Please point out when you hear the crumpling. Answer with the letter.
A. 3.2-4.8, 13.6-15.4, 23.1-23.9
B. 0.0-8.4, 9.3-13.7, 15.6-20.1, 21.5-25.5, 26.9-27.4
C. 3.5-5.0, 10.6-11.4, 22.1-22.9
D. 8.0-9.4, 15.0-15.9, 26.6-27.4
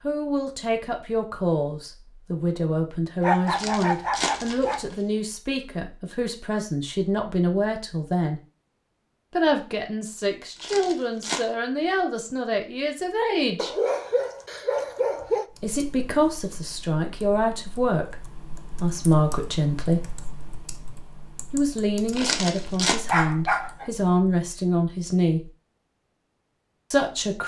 C.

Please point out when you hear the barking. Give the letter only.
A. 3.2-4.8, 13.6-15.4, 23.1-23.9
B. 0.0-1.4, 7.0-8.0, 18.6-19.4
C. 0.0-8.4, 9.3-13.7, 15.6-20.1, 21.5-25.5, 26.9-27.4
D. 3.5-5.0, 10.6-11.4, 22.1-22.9
A.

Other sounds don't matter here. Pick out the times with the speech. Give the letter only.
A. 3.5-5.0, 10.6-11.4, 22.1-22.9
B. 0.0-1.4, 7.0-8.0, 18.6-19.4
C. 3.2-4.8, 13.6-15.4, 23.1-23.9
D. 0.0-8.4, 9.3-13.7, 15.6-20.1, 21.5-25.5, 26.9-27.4
D.